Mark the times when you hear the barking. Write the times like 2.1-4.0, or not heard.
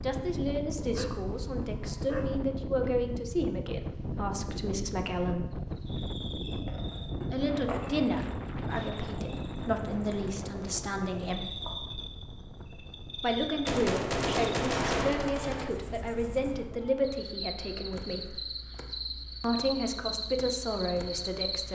0.8-2.5.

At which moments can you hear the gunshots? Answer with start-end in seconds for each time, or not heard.
13.7-15.7.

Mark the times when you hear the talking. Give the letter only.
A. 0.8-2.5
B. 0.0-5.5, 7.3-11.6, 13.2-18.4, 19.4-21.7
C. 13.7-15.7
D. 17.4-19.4
B.